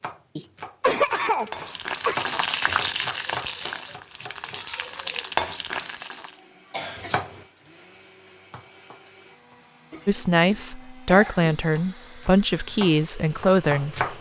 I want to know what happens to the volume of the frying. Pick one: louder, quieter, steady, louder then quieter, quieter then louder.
quieter then louder.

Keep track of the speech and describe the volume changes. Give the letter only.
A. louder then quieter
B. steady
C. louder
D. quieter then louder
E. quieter
C.